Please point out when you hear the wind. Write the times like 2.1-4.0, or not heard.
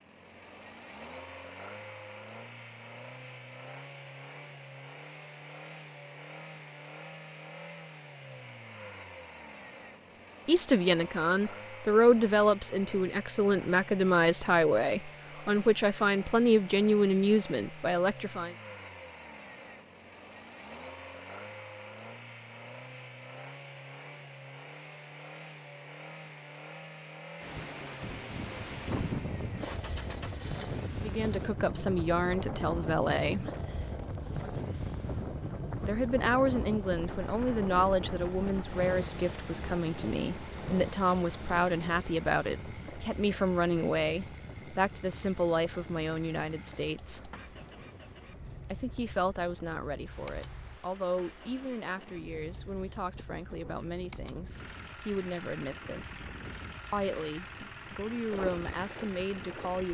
27.4-59.8.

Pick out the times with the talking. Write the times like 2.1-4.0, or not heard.
10.4-18.6, 30.9-33.5, 35.8-47.3, 48.7-56.3, 56.9-59.8.